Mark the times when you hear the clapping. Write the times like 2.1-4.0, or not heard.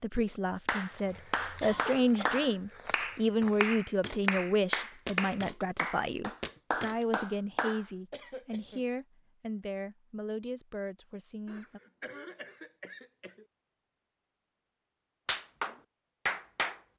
0.7-7.8, 15.2-16.8.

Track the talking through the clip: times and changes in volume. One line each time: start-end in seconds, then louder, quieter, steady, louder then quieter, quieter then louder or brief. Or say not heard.
0.0-11.8 quieter.